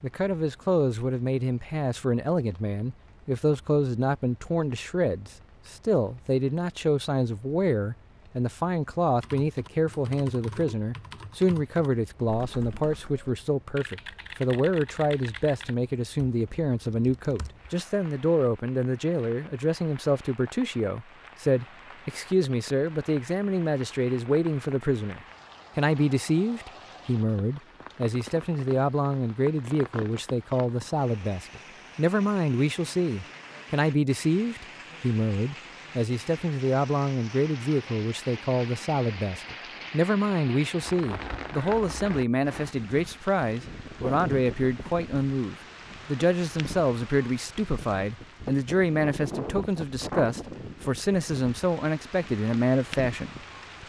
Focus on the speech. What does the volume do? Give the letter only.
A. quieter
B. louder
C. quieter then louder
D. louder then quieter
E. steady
E.